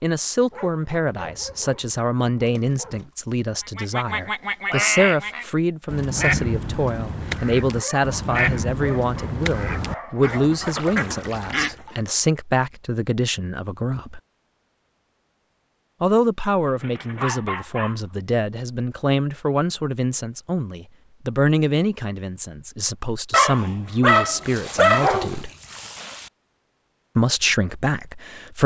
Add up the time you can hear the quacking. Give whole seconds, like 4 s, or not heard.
8 s.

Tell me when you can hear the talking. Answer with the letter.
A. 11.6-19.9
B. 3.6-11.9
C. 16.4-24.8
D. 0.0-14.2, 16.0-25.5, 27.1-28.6
D.